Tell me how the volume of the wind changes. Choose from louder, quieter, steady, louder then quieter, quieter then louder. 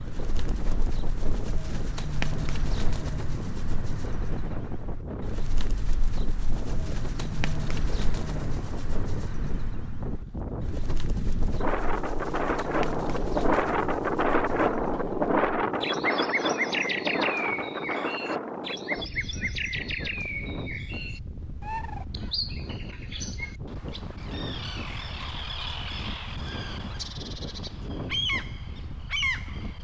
louder then quieter.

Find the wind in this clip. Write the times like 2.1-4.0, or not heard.
0.0-29.7.